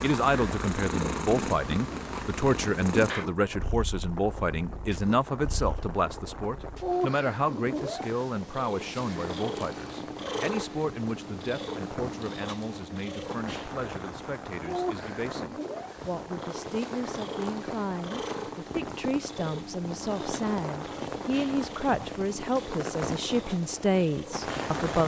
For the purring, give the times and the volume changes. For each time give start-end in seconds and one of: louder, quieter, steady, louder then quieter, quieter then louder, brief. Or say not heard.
0.0-24.8 quieter.